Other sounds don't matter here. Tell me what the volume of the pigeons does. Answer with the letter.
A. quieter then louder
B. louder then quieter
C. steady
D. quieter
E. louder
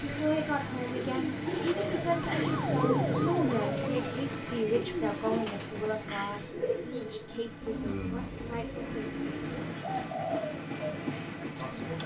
C.